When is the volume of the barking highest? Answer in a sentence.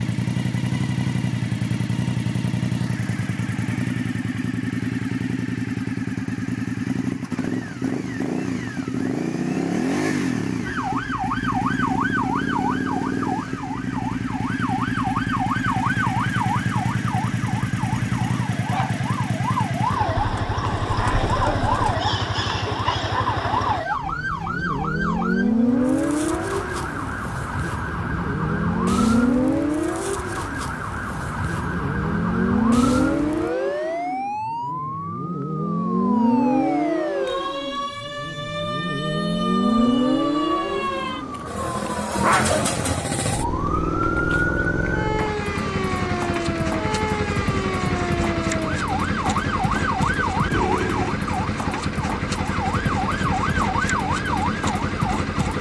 The loudest moment of the barking is at 42 seconds.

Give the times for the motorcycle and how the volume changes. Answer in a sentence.
The motorcycle can be heard from 0.0 to 55.5 s, at a steady volume.